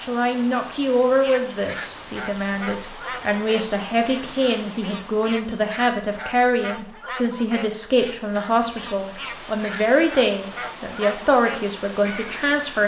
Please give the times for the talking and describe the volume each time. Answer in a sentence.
The talking can be heard from 0.0 to 12.8 s, at a steady volume.